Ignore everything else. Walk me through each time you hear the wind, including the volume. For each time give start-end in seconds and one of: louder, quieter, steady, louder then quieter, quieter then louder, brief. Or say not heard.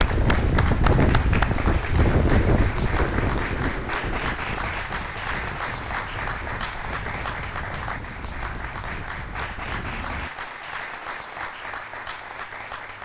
0.0-10.3 quieter.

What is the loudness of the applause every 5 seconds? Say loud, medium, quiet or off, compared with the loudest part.
loud, loud, medium.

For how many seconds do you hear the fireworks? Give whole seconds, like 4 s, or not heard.
not heard.